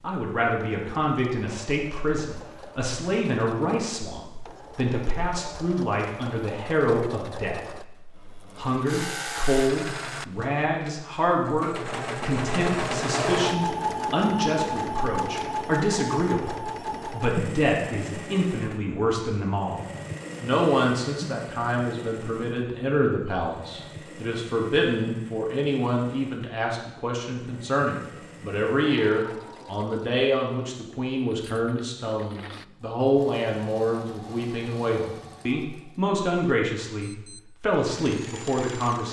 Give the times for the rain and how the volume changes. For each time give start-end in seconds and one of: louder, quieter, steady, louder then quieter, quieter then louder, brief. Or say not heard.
not heard.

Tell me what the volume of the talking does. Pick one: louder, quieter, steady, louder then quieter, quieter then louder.
steady.